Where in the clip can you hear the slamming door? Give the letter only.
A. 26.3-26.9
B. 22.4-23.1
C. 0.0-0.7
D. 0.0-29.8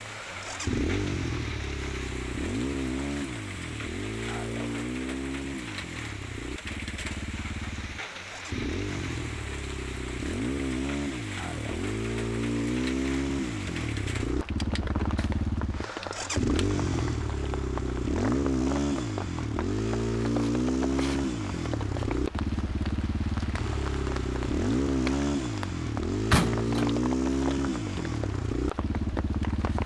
A.